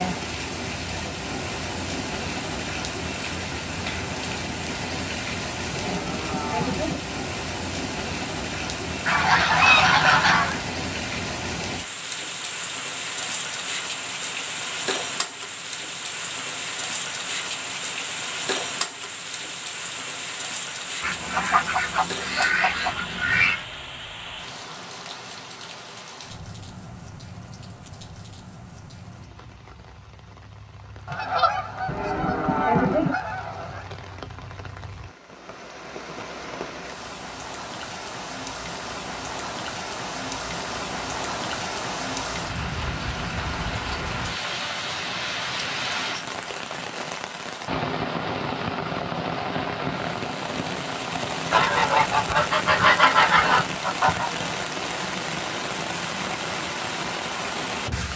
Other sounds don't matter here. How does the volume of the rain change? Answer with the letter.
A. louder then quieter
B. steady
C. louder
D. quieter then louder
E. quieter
D.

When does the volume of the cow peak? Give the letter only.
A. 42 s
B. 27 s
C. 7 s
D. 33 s
D.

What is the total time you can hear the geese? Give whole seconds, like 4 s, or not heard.
10 s.